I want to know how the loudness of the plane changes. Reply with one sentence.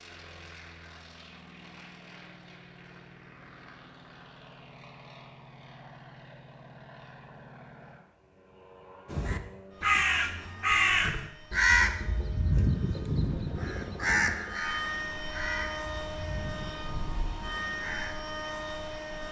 The loudness of the plane goes up.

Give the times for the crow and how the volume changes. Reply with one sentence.
You can hear the crow from 9.1 to 18.1 s, getting quieter.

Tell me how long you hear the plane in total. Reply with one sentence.
You can hear the plane for 19 seconds altogether.